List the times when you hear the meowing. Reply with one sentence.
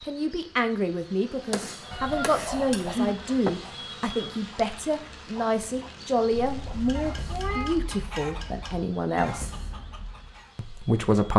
You can hear the meowing from 1.9 to 3.1 s and from 6.3 to 7.8 s.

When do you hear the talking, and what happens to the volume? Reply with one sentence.
The talking can be heard from 0.0 to 9.5 s, at a steady volume; and briefly from 10.6 to 11.3 s.